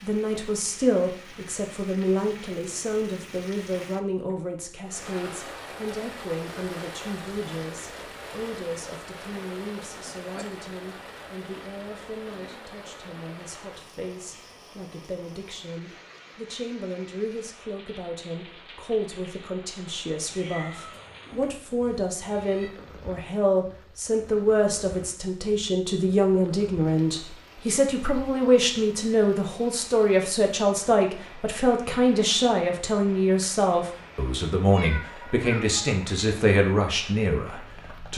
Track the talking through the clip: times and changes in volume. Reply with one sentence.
The talking can be heard from 0.0 to 38.1 s, getting quieter then louder.